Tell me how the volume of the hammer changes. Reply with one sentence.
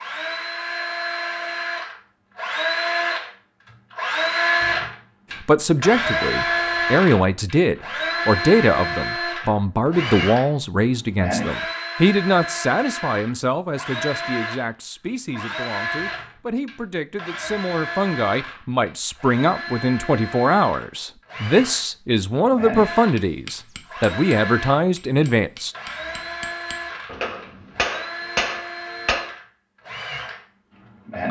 The volume of the hammer goes up.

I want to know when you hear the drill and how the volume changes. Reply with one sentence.
The drill can be heard from 0.0 to 31.2 s, getting quieter.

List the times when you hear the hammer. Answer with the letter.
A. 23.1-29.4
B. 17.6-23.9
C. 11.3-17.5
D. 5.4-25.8
A.